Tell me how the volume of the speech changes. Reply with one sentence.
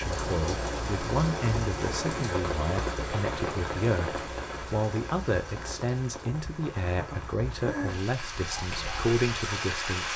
The volume of the speech stays about the same.